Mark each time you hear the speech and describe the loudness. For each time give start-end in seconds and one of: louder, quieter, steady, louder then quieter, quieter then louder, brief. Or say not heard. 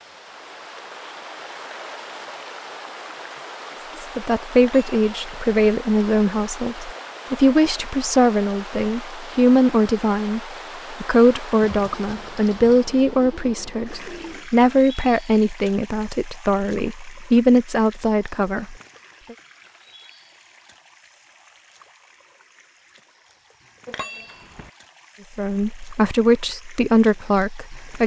4.2-19.4 steady
25.4-28.0 brief.